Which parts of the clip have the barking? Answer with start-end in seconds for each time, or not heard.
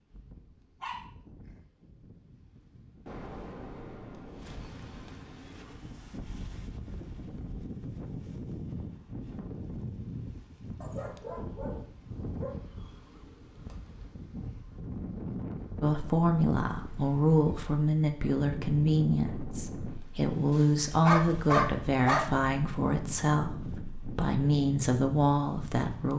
0.8-1.6, 10.8-12.6, 20.6-22.2.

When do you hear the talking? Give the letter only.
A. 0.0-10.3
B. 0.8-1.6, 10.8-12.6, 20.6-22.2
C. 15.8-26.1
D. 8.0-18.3
C.